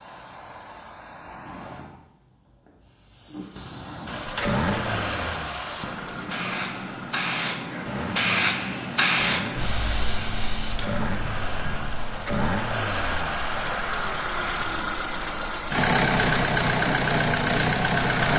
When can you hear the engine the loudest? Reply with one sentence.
The loudest moment of the engine is at 16 seconds.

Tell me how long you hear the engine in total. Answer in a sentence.
You can hear the engine for 14 seconds altogether.